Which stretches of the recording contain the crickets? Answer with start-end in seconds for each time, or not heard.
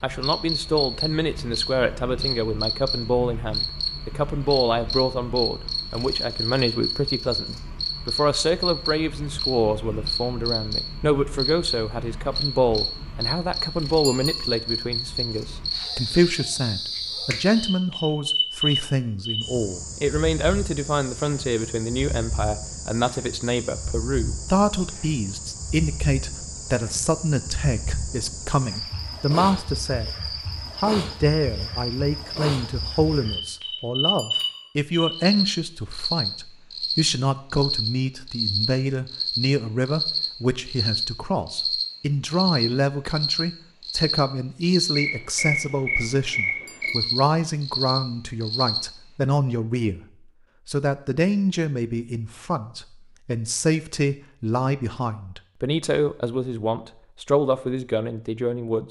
0.0-48.8.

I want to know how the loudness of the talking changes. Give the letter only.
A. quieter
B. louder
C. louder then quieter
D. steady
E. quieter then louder
D.